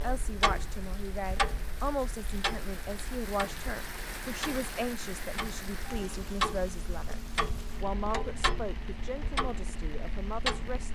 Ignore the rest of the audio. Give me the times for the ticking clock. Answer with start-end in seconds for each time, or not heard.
0.0-10.9.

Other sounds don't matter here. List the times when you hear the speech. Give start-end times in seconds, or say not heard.
0.0-10.9.